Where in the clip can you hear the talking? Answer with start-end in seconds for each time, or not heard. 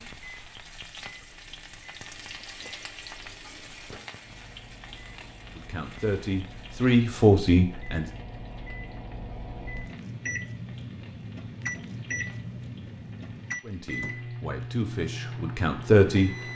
5.5-8.1, 13.6-16.5.